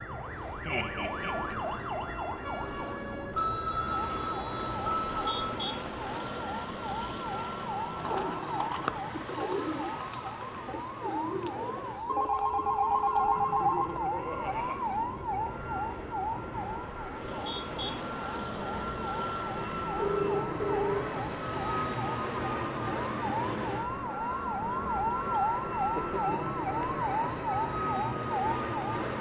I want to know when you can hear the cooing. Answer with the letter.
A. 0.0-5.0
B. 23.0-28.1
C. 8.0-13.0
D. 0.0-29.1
C.